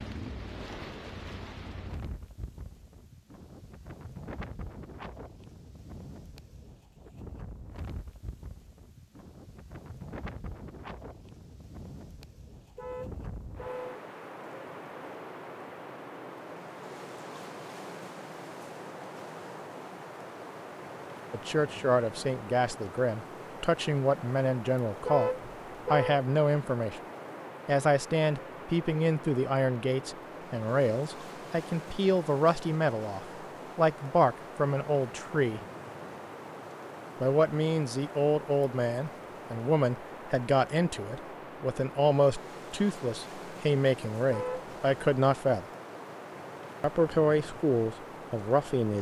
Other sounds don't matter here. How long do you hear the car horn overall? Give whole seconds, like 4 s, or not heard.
3 s.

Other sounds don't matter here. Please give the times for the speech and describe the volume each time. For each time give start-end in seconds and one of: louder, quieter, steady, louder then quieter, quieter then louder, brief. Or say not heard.
21.3-25.3 steady
25.9-27.0 brief
27.6-35.6 steady
37.2-45.6 steady
46.8-48.9 brief.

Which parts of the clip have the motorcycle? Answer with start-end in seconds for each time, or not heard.
0.0-2.1.